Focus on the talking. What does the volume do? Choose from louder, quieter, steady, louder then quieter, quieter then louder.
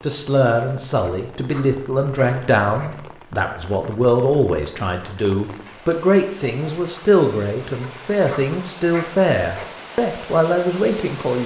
steady.